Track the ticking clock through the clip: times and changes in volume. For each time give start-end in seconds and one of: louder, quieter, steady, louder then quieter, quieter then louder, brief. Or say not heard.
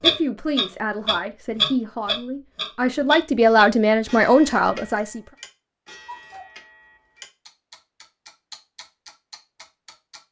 0.0-10.2 quieter.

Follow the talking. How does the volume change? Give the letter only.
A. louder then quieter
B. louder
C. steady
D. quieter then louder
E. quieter
B.